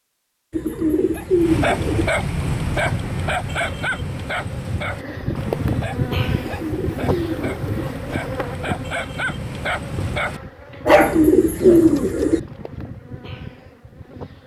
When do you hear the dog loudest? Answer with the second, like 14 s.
11 s.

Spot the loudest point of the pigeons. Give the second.
12 s.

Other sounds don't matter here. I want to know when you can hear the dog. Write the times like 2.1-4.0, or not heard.
0.8-12.1.